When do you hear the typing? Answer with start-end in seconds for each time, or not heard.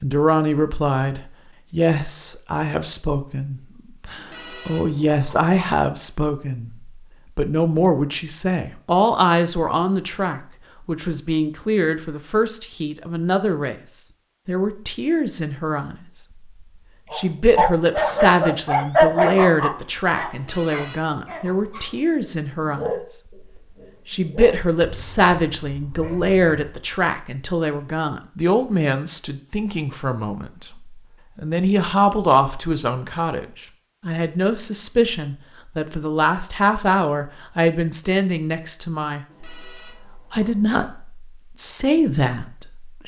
not heard.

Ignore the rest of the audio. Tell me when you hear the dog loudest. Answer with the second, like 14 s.
19 s.